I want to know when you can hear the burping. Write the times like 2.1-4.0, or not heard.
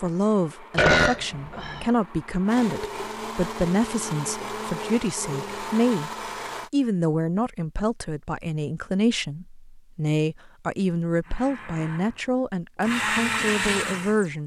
0.8-1.9.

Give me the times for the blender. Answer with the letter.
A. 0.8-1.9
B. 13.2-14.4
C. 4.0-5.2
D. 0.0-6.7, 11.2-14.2
D.